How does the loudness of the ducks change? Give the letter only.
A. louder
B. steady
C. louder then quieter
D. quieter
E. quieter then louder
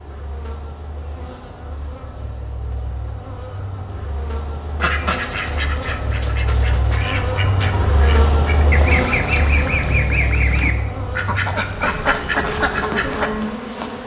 A.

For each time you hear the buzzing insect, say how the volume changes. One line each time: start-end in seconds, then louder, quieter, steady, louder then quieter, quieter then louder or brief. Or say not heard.
0.0-14.0 louder.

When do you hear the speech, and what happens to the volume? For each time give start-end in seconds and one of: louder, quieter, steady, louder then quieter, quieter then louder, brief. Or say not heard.
not heard.